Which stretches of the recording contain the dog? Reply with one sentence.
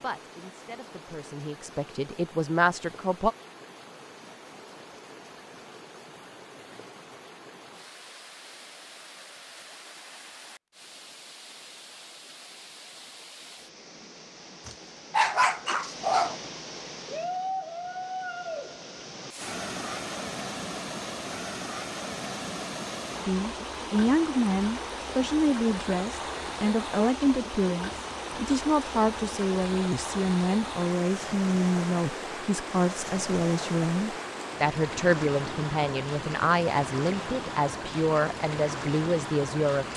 The dog can be heard from 14.7 to 16.4 s.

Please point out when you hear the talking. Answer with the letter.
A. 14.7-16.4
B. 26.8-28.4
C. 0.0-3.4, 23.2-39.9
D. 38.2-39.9
C.